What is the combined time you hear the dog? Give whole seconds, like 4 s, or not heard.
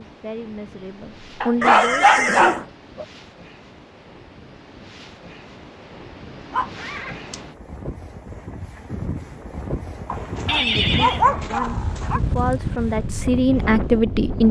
5 s.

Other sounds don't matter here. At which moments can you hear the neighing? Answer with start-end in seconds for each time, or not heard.
1.6-2.6, 6.7-7.3, 10.4-11.2.